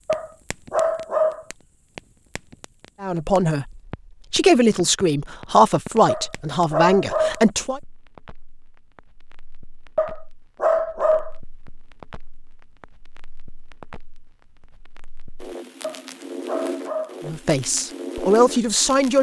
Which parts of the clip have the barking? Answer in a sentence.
You can hear the barking from 0.1 to 1.4 s, from 6.0 to 7.5 s, from 9.9 to 11.3 s and from 15.8 to 17.2 s.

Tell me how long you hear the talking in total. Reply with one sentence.
You can hear the talking for 7 seconds altogether.